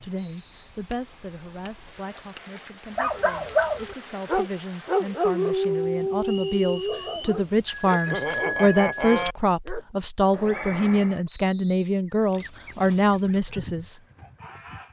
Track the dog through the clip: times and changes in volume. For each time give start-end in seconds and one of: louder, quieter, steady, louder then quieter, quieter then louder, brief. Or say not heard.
3.0-11.2 quieter.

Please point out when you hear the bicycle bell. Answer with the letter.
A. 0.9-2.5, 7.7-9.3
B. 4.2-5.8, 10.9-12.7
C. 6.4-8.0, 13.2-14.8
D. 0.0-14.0
A.